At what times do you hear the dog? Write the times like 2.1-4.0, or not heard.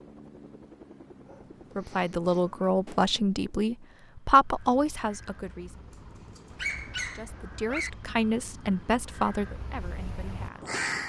1.2-2.7, 6.3-7.9.